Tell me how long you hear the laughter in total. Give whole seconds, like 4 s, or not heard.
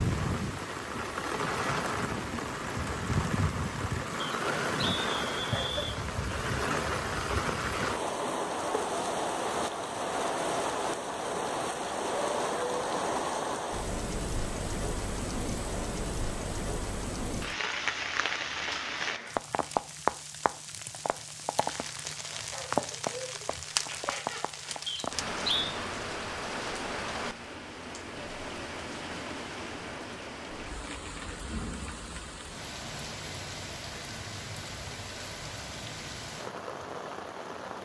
3 s.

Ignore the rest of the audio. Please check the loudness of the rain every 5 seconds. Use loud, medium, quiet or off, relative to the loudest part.
loud, loud, loud, loud, loud, medium, medium, medium.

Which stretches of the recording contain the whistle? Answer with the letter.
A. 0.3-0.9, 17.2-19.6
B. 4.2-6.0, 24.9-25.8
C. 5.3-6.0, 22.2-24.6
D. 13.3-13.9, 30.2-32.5
B.